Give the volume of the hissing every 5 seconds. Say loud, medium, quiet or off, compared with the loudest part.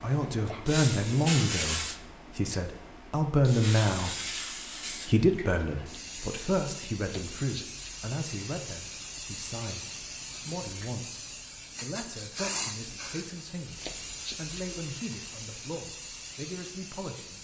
loud, medium, loud, medium.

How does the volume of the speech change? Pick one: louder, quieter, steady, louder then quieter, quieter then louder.
quieter.